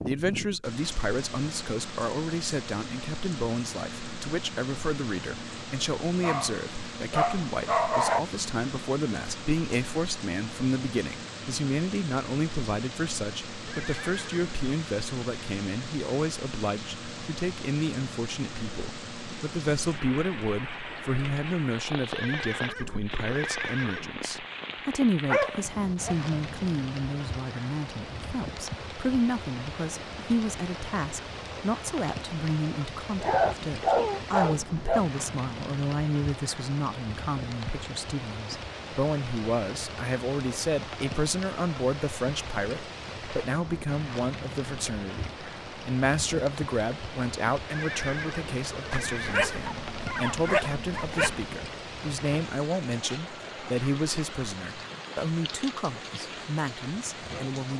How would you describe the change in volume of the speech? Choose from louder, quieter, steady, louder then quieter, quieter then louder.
steady.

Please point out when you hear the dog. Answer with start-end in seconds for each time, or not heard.
6.2-8.2, 25.2-26.1, 33.2-35.0, 48.9-51.5.